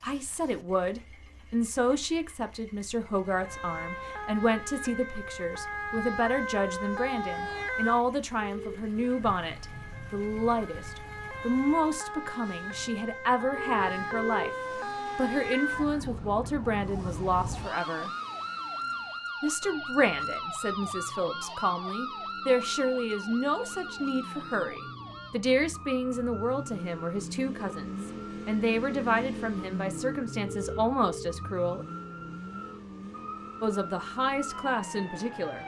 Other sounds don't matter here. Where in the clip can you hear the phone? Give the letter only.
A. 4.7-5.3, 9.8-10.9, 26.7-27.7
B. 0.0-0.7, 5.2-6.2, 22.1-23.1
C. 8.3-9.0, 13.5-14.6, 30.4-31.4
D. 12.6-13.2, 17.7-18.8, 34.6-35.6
C.